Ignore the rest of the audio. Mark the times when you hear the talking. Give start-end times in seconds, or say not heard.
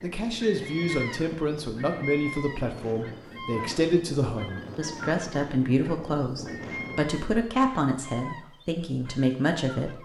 0.0-10.0.